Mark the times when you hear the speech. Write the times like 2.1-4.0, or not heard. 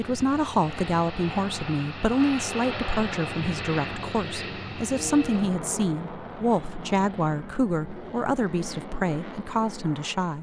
0.0-10.3.